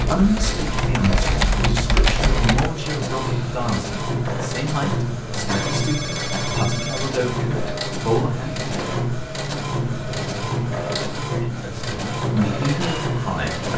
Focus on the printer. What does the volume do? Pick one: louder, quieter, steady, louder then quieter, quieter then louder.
steady.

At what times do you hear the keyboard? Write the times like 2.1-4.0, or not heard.
0.1-2.7.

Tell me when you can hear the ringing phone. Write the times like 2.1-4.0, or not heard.
5.5-7.2.